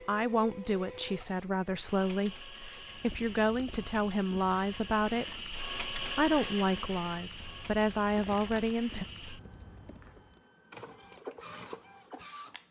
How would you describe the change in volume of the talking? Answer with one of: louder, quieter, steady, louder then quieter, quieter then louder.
steady.